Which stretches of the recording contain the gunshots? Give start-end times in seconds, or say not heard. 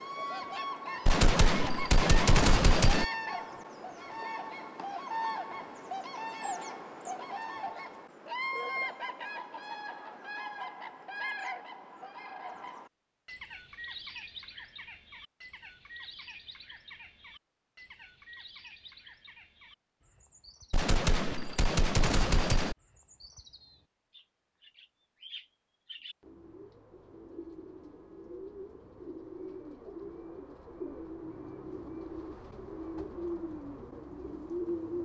1.1-3.0, 20.7-22.8.